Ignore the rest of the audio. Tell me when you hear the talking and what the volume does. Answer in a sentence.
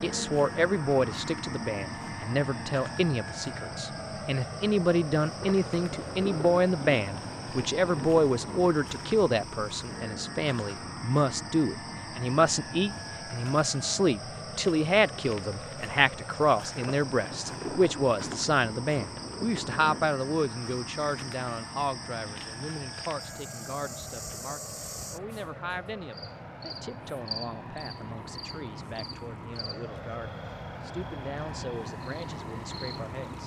The talking can be heard from 0.0 to 33.4 s, getting quieter.